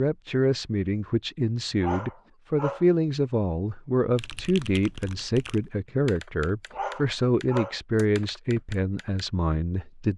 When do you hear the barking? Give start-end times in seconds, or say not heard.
1.8-2.9, 6.7-7.8.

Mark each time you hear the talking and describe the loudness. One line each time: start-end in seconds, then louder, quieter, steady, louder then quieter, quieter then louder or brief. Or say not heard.
0.0-10.1 steady.